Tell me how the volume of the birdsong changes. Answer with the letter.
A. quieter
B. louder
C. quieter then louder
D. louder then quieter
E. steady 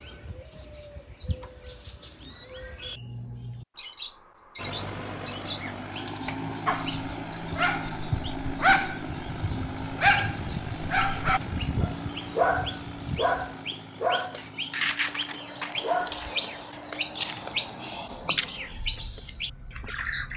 B.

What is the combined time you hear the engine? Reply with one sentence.
You can hear the engine for 16 seconds altogether.